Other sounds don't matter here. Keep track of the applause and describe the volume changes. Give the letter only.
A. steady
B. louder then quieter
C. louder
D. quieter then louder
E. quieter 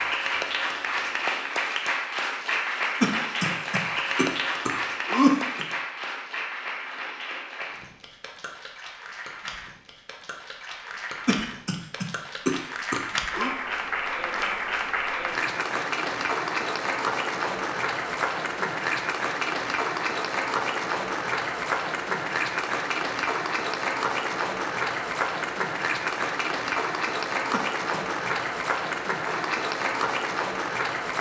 D.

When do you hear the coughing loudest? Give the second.
5 s.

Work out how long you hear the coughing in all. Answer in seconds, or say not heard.
6 s.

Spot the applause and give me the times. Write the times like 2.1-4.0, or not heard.
0.0-31.1.